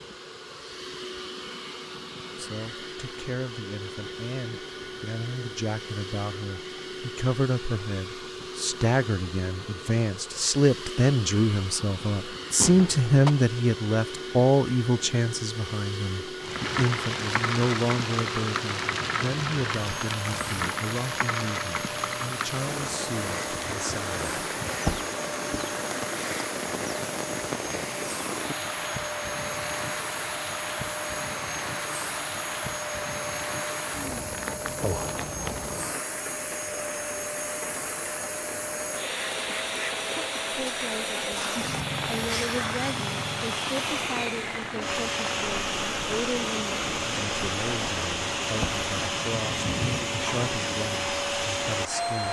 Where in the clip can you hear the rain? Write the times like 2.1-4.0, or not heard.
16.4-52.2.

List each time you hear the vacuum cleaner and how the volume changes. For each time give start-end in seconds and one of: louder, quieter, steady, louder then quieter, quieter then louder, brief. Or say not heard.
0.0-52.2 louder.